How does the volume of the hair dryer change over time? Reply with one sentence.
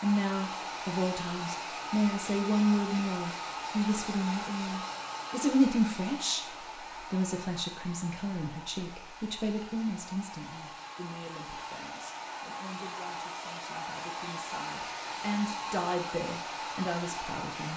The volume of the hair dryer goes down, then up.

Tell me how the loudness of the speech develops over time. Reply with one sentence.
The loudness of the speech goes down, then up.